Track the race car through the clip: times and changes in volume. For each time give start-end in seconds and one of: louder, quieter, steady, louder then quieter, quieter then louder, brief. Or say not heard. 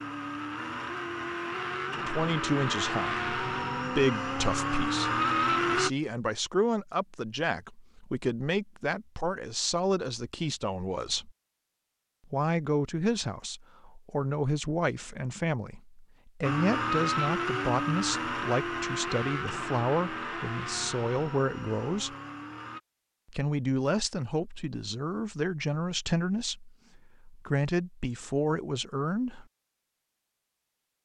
0.0-5.9 louder
16.4-22.8 quieter.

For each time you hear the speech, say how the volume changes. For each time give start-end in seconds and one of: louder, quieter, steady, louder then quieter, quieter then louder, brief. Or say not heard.
1.9-11.3 steady
12.3-22.1 steady
23.3-29.4 steady.